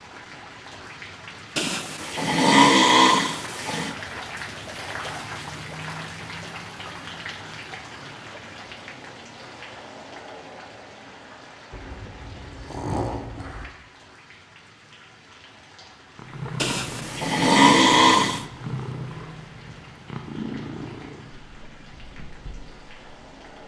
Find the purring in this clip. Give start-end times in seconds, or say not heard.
16.1-23.6.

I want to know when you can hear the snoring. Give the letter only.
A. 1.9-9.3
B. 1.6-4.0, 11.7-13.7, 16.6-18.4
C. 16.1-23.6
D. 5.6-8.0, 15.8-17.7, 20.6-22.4
B.